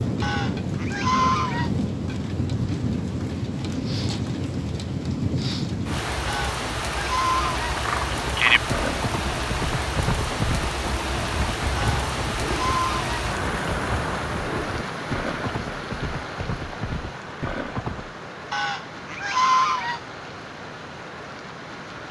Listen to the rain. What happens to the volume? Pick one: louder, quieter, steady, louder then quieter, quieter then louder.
quieter.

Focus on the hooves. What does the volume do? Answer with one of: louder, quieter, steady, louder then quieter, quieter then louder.
quieter.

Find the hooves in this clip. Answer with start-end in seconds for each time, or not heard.
7.7-18.1.